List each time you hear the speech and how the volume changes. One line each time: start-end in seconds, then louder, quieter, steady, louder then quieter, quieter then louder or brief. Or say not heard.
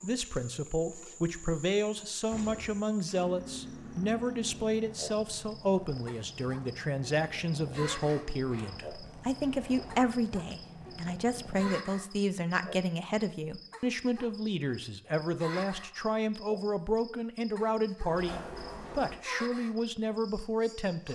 0.0-21.1 steady.